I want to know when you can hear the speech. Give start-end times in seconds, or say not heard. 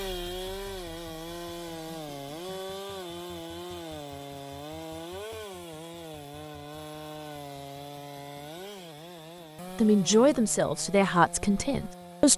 9.8-12.3.